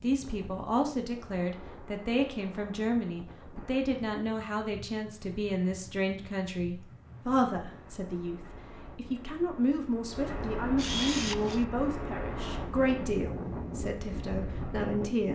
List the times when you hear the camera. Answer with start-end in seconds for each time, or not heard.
10.8-11.7.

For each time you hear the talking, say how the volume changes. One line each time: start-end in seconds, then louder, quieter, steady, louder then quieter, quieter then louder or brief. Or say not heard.
0.0-15.3 steady.